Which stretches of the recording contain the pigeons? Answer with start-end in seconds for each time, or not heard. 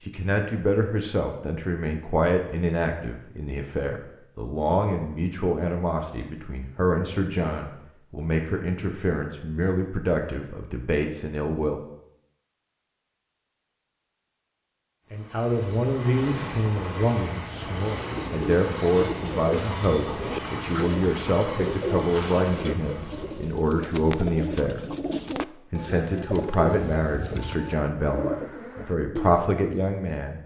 17.5-29.5.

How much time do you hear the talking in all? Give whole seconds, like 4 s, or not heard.
26 s.